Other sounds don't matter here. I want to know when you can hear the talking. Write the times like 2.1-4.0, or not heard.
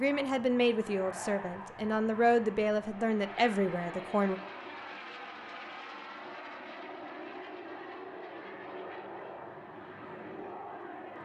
0.0-4.4.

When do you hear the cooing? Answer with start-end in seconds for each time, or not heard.
not heard.